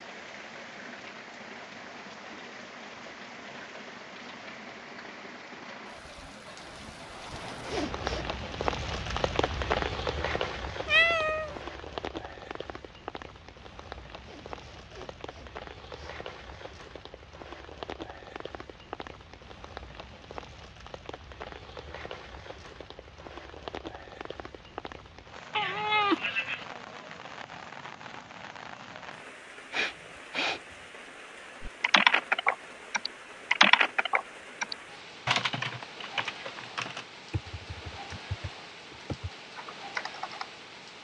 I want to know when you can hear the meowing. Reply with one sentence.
The meowing can be heard from 10.8 to 11.6 s and from 25.6 to 26.6 s.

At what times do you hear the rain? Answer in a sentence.
The rain can be heard from 0.0 to 41.0 s.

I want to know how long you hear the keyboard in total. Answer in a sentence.
You can hear the keyboard for 9 seconds altogether.